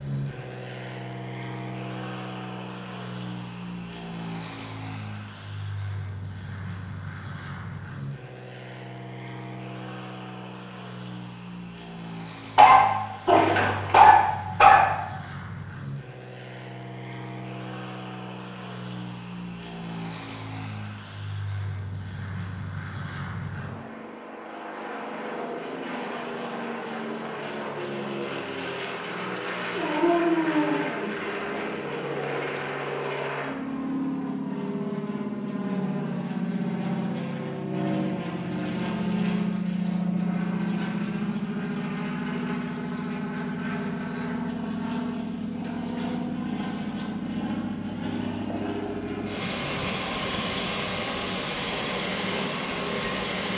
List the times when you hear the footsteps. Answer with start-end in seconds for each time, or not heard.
not heard.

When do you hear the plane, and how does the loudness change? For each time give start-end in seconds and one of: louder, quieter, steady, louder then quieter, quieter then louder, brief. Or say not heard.
0.0-53.5 louder.